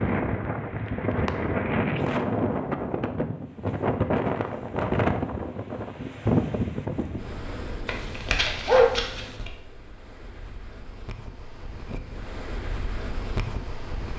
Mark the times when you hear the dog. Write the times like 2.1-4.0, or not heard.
7.8-9.5.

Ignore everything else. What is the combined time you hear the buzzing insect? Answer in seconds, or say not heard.
not heard.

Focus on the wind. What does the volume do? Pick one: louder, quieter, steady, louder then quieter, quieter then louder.
quieter then louder.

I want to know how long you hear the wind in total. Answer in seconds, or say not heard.
14 s.